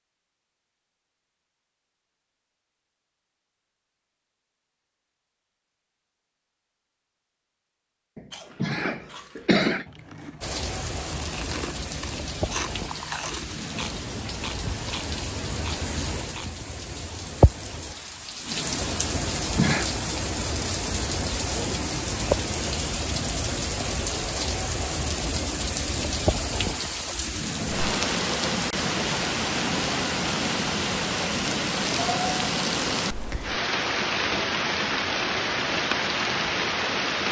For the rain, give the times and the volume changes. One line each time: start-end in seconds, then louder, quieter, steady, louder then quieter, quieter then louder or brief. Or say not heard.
10.4-37.2 louder.